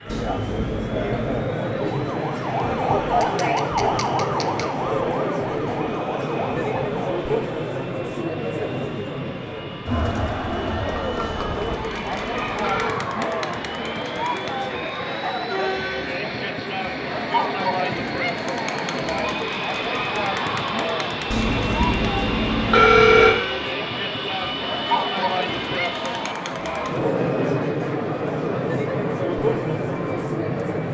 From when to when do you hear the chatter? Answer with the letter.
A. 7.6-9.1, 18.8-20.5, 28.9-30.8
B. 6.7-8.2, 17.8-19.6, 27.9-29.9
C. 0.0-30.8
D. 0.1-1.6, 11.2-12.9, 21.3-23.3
C.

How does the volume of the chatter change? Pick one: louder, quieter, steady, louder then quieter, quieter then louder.
steady.